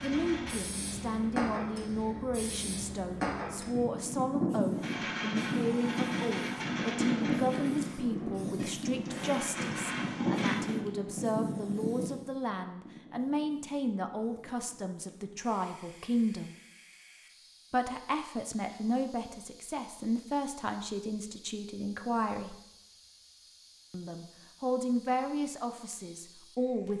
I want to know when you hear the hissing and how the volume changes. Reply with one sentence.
The hissing can be heard from 0.0 to 26.9 s, getting quieter.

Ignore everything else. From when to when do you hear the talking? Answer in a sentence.
The talking can be heard from 0.0 to 16.6 s, from 17.7 to 22.6 s and from 23.9 to 26.9 s.